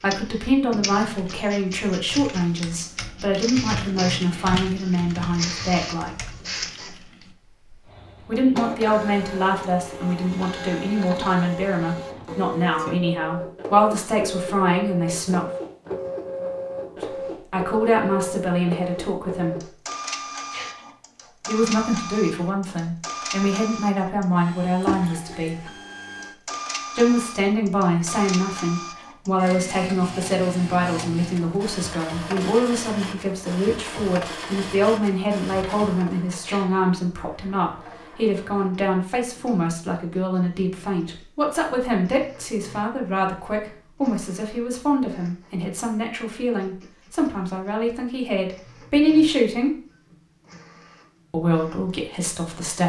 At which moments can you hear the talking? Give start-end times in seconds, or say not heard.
0.0-6.2, 8.2-15.5, 17.5-19.6, 21.4-25.7, 26.9-49.7, 51.3-52.8.